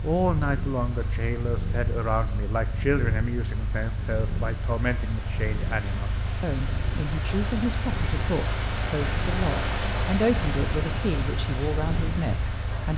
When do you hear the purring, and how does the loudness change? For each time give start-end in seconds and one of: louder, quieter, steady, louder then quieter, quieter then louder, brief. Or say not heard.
0.0-12.9 steady.